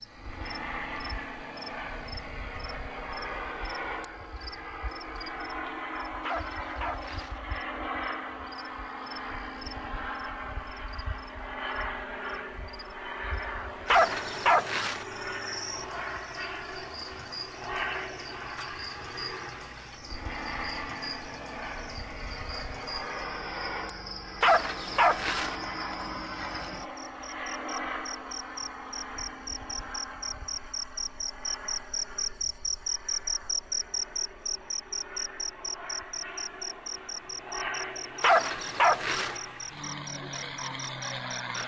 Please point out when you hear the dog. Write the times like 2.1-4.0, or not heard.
6.2-7.4, 13.8-15.1, 24.4-25.6, 38.2-39.4.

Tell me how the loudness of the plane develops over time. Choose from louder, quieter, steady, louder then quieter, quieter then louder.
steady.